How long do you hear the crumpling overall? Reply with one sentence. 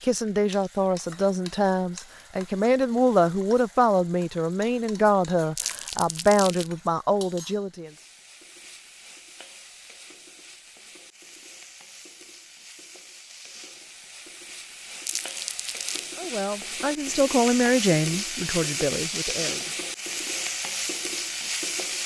The crumpling can be heard for 2 seconds in total.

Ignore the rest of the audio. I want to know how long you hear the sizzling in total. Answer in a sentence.
You can hear the sizzling for 22 seconds altogether.